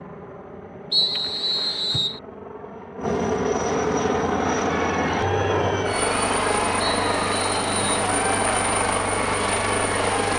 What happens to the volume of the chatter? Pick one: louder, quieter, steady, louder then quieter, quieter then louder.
steady.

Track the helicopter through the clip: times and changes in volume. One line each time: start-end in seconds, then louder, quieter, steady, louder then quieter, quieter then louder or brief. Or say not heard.
0.0-10.3 louder.